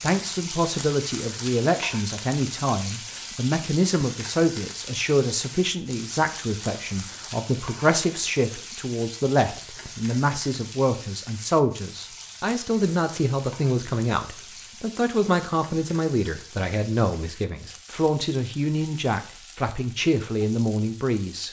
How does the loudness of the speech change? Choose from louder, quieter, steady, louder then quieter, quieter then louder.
steady.